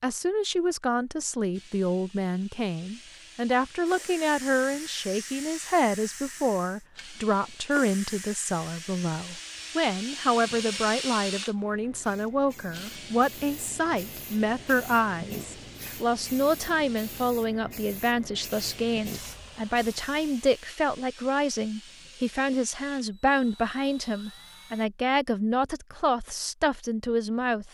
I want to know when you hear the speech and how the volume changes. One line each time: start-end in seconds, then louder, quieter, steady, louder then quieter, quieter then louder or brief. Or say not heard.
0.0-27.6 steady.